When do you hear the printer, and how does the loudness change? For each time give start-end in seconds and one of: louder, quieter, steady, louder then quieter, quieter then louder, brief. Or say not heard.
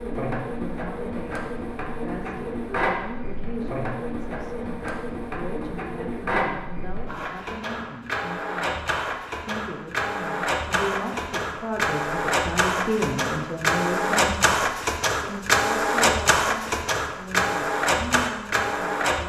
0.0-19.2 louder.